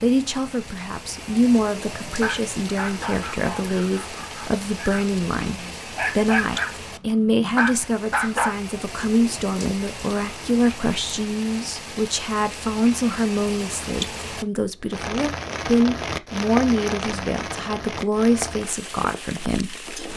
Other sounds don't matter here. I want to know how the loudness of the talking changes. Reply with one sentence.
The volume of the talking stays about the same.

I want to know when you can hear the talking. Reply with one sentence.
You can hear the talking from 0.0 to 19.9 s.